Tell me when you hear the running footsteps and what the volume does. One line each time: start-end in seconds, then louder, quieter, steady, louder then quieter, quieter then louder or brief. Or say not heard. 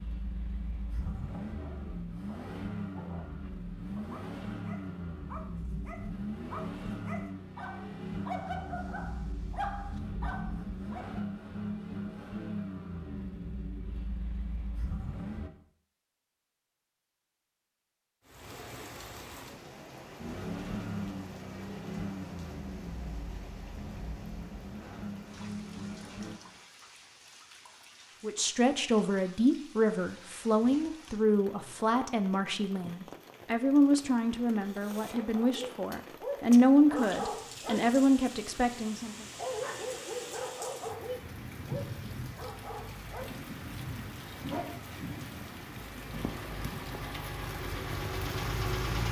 not heard.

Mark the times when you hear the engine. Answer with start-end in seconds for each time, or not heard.
0.0-15.5, 20.1-26.4, 46.0-49.0.